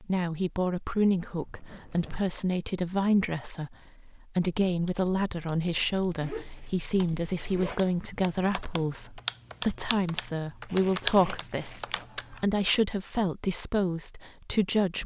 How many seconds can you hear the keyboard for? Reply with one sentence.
The keyboard can be heard for 8 seconds in total.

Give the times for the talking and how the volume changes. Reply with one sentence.
The talking can be heard from 0.0 to 15.0 s, at a steady volume.